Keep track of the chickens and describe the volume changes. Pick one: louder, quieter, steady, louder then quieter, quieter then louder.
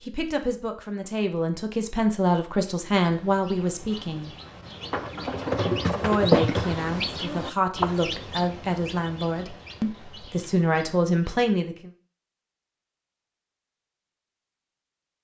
louder then quieter.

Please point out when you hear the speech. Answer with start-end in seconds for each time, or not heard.
0.0-4.3, 6.0-11.9.